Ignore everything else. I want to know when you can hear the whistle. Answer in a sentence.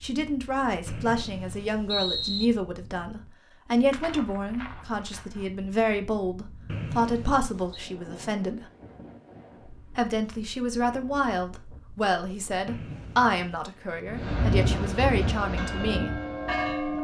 You can hear the whistle from 0.8 to 2.5 s, from 6.7 to 7.8 s and from 12.7 to 13.7 s.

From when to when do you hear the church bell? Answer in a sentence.
You can hear the church bell from 15.4 to 16.9 s.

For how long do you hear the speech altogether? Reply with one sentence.
The speech can be heard for 15 seconds in total.